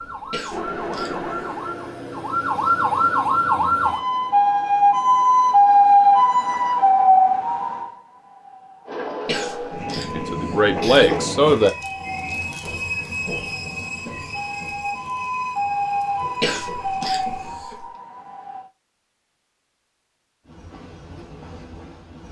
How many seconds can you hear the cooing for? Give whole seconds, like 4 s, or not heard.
not heard.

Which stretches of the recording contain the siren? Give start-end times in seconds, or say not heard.
0.0-18.6.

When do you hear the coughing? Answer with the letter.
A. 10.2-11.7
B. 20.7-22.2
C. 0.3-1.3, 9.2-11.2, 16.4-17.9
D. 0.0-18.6
C.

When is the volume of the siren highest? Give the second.
6 s.